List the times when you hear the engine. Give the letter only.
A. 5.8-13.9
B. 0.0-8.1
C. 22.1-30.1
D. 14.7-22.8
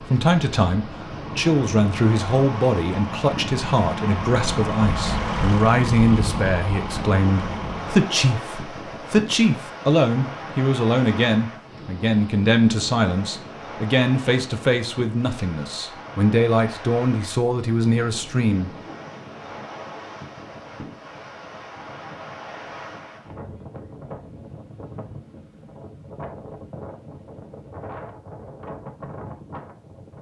B.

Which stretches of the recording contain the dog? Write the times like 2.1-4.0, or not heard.
not heard.